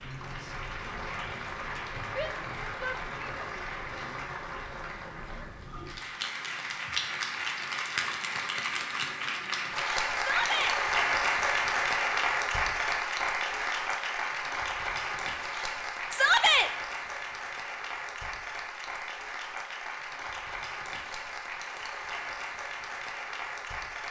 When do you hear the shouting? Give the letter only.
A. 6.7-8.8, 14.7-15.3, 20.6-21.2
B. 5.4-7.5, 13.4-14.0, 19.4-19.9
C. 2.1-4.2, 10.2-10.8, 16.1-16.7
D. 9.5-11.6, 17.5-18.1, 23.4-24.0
C.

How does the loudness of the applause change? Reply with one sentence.
The volume of the applause goes up, then down.